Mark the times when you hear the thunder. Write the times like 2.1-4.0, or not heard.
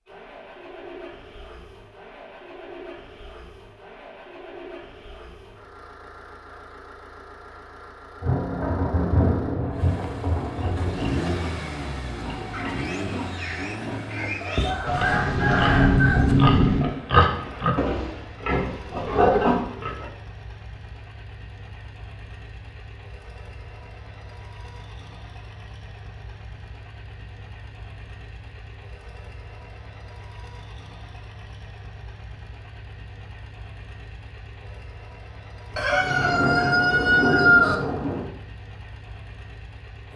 8.2-11.2, 14.8-16.8, 35.7-38.3.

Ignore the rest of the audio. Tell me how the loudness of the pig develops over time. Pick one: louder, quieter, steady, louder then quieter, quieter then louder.
louder.